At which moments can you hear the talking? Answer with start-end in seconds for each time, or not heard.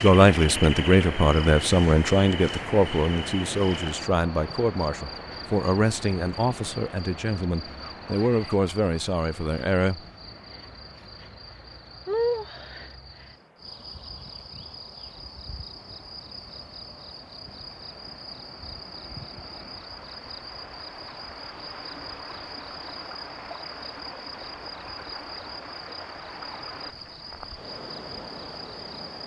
0.0-10.0.